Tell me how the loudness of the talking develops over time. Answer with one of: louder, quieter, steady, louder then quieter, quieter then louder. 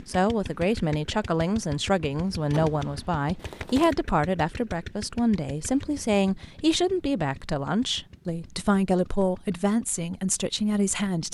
steady.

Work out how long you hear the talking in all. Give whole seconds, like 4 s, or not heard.
11 s.